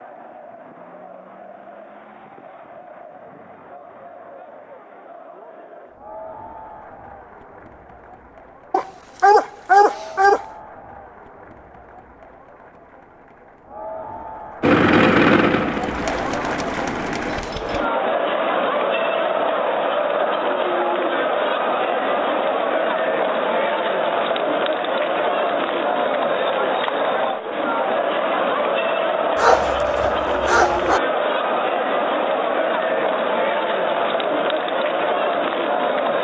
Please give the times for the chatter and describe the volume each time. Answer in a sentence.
You can hear the chatter from 0.0 to 36.1 s, getting louder.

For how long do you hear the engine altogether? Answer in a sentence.
You can hear the engine for 3 seconds altogether.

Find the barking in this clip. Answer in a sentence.
The barking can be heard from 8.7 to 10.4 s and from 29.4 to 31.0 s.